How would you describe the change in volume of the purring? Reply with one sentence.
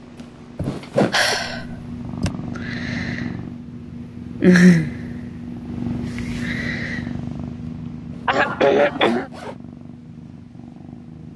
The loudness of the purring goes up, then down.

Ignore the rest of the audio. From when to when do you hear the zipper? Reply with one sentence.
The zipper can be heard from 0.2 to 1.4 s and from 8.1 to 9.6 s.